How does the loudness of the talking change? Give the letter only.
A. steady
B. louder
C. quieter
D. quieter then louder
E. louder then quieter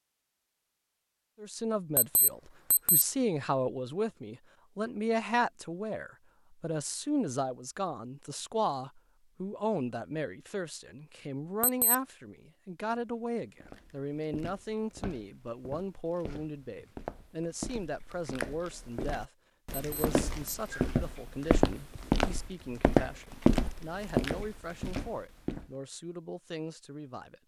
C.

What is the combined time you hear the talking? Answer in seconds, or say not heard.
26 s.